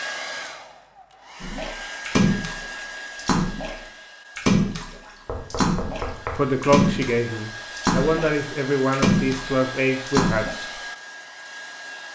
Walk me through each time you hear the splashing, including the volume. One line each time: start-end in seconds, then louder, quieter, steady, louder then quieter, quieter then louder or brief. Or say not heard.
1.4-10.6 steady.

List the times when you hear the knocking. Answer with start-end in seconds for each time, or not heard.
5.2-6.6.